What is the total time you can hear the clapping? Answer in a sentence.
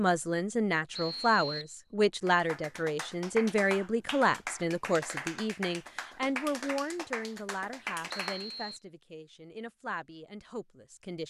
You can hear the clapping for 6 seconds altogether.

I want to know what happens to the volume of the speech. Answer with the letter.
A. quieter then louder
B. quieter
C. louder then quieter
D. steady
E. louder
B.